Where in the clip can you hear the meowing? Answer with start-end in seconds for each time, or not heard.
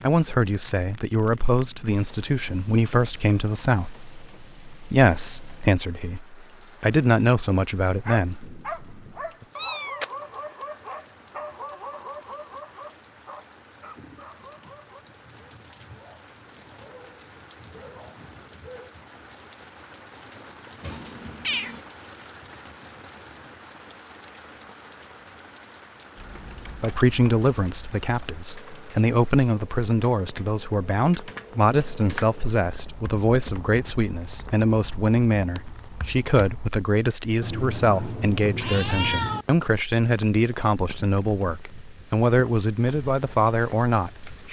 9.6-10.2, 20.8-21.8, 37.4-39.5.